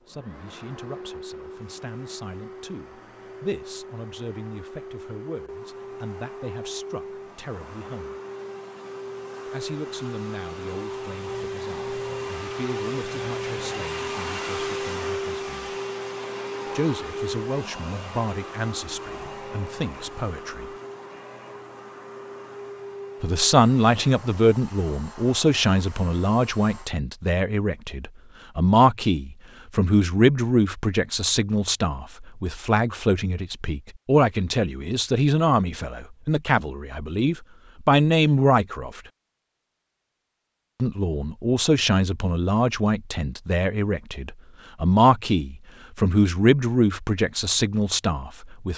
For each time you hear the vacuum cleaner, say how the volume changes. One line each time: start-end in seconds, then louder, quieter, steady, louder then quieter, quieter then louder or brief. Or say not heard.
0.0-26.9 louder then quieter.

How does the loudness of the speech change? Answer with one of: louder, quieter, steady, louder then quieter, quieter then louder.
louder.